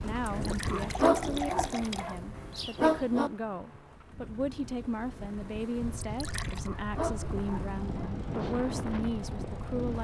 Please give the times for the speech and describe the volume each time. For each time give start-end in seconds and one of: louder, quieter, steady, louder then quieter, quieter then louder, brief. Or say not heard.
0.0-9.9 steady.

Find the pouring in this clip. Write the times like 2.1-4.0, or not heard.
0.3-2.2, 6.0-6.7.